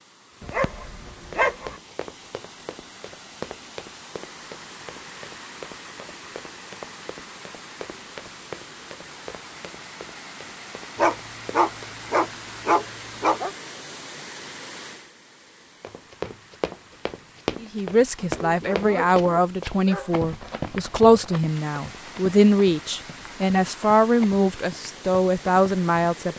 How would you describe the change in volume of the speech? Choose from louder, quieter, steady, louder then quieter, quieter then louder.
steady.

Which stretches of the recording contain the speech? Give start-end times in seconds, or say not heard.
17.6-26.3.